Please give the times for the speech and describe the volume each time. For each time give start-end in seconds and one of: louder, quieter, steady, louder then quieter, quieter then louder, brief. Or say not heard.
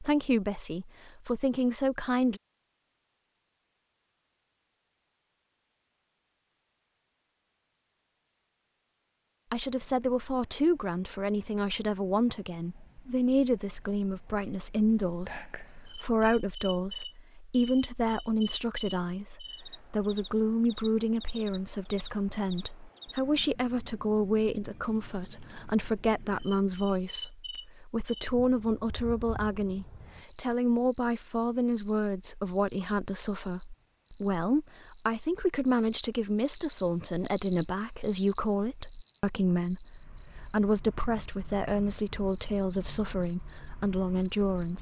0.0-2.4 brief
9.5-44.7 steady.